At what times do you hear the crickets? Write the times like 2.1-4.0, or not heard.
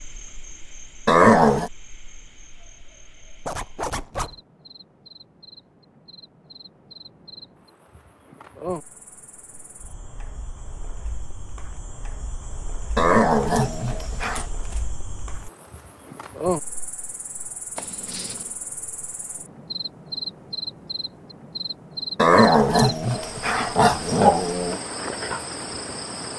0.0-26.3.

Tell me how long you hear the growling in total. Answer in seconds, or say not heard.
5 s.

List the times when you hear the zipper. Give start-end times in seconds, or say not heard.
3.5-4.4, 14.2-14.8, 17.8-18.6.